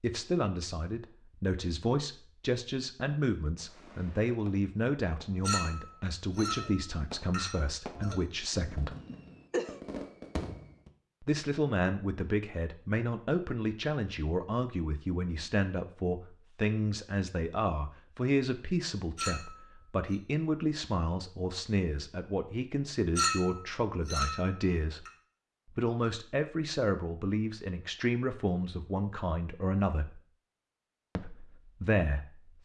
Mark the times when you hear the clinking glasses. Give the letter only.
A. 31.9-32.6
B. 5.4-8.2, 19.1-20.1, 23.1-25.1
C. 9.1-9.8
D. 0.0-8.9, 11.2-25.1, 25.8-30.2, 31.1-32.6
B.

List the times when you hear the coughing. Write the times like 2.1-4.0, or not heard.
9.1-9.8.